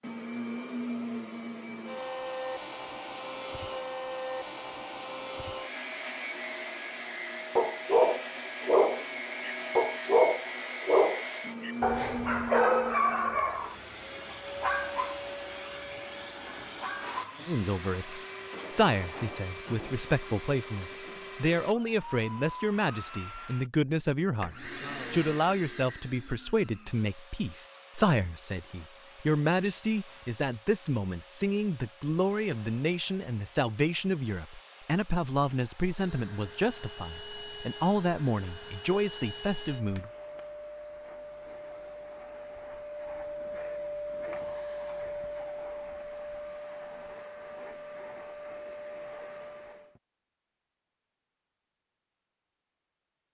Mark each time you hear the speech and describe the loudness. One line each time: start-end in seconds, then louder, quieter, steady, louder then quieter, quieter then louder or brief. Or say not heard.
17.4-40.1 steady.